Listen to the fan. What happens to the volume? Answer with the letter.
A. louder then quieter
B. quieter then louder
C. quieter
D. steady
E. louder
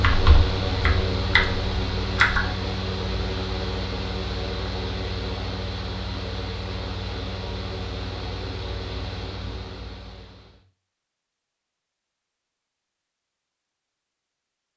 C.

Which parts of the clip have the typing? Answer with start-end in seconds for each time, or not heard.
0.0-2.4.